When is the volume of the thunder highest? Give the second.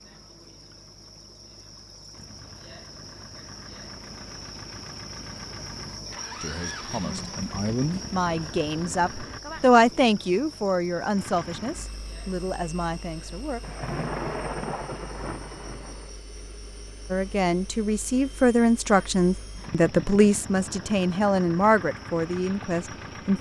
14 s.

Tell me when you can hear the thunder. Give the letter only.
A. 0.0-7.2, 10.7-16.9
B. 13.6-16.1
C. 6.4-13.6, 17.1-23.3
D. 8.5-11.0
B.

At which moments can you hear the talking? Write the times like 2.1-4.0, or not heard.
6.4-13.6, 17.1-23.3.